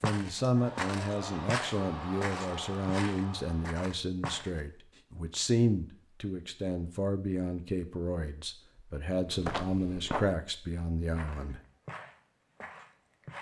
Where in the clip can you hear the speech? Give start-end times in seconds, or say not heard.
0.0-11.6.